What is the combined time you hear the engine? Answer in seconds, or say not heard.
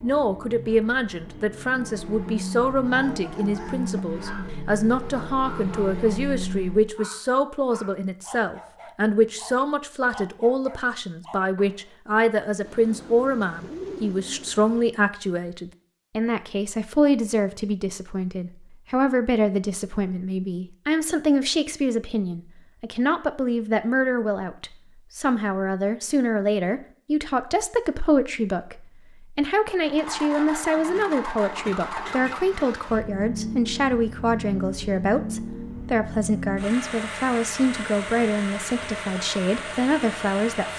18 s.